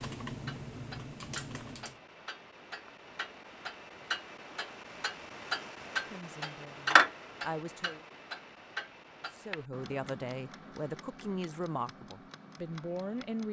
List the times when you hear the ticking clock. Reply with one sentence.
The ticking clock can be heard from 0.2 to 13.4 s.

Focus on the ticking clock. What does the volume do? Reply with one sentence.
The loudness of the ticking clock goes up, then down.